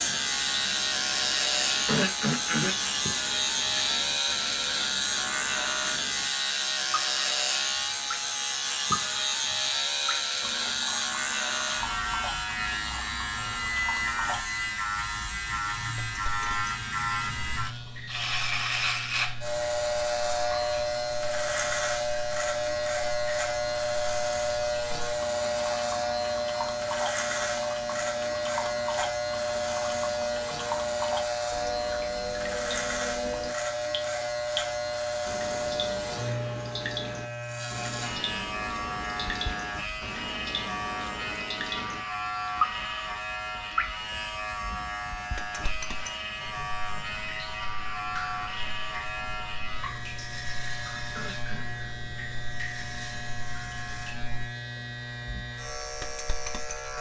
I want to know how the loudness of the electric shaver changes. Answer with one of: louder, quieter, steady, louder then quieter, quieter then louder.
quieter.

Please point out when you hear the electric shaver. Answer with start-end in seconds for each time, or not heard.
0.0-56.9.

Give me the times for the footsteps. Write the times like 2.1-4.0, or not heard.
not heard.